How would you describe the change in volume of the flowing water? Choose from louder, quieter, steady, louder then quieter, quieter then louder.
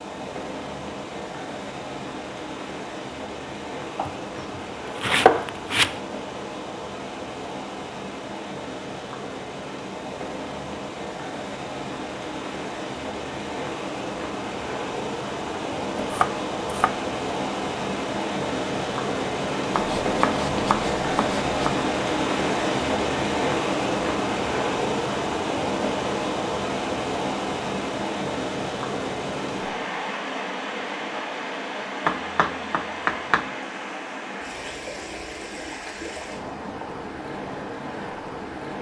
louder then quieter.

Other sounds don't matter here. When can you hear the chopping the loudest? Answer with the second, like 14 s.
5 s.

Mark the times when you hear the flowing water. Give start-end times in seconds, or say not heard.
0.0-38.7.